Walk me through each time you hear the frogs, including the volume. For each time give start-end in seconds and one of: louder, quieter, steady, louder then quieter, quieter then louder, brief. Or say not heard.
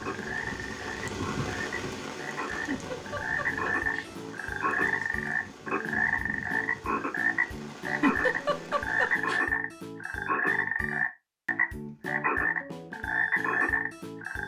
0.0-14.4 louder.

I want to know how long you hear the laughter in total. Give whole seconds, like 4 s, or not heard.
3 s.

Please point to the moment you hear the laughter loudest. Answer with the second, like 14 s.
8 s.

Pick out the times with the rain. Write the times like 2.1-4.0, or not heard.
0.0-9.2.